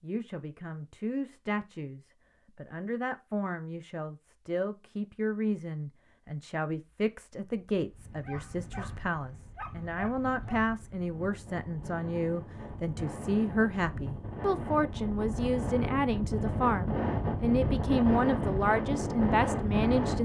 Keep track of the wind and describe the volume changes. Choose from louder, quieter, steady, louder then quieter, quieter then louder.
louder.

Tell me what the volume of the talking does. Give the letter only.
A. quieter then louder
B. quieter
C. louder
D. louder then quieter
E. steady
C.